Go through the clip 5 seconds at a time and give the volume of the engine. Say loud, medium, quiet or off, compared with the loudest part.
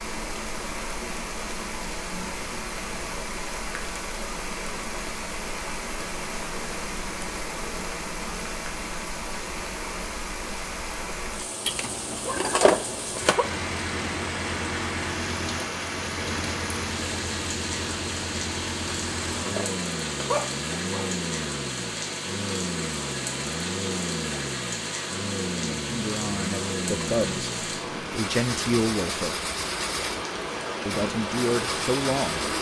off, off, loud, loud, loud, loud, loud.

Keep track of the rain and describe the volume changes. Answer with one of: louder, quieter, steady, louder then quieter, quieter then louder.
steady.